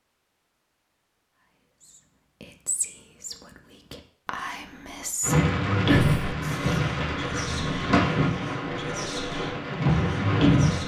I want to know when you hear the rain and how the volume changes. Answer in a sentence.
You can hear the rain from 5.2 to 10.8 s, getting quieter then louder.